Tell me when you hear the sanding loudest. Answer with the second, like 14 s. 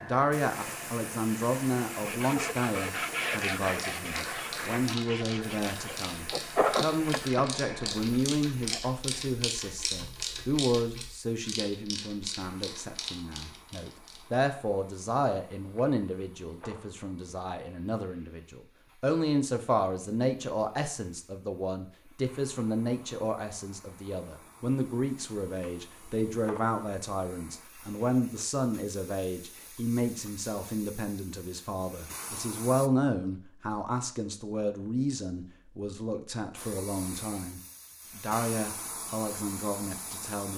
7 s.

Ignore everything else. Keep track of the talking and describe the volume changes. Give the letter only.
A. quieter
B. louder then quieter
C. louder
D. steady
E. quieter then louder
D.